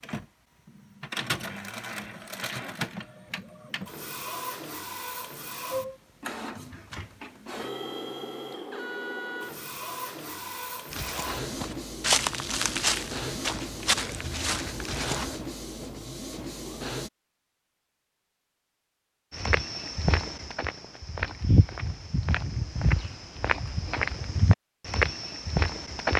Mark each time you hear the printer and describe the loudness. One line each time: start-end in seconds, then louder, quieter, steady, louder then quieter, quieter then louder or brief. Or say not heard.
0.0-17.1 steady.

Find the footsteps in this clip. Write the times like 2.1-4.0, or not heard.
10.9-15.3, 19.3-26.1.